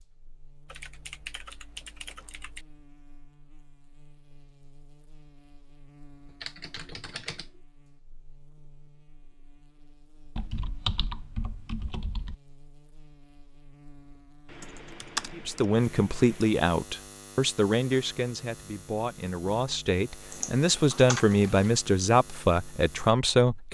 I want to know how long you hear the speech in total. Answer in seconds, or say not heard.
8 s.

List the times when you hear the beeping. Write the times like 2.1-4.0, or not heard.
not heard.